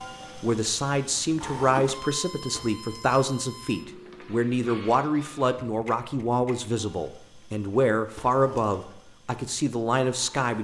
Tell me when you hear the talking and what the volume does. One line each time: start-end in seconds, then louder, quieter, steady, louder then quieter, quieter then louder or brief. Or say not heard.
0.3-10.5 steady.